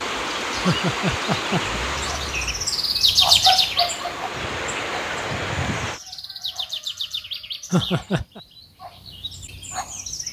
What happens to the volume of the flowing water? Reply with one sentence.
The loudness of the flowing water goes down, then up.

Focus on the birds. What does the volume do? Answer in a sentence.
The volume of the birds goes up, then down.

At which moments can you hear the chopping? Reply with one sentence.
You can't hear the chopping here.